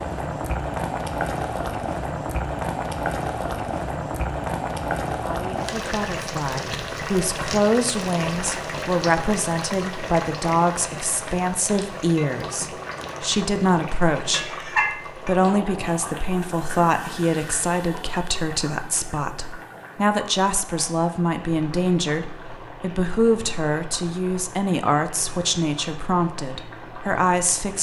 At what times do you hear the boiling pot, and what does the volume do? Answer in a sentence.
The boiling pot can be heard from 0.0 to 27.7 s, getting quieter.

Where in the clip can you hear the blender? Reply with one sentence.
The blender can't be heard in this clip.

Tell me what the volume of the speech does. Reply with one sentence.
The volume of the speech stays about the same.